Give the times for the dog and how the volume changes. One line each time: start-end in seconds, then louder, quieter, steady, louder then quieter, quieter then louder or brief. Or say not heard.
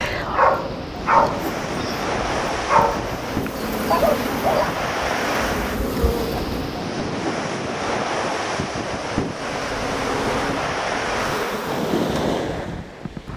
0.0-4.8 quieter then louder.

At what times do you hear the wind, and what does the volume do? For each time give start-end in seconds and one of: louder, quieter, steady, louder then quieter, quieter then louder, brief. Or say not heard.
0.0-13.3 steady.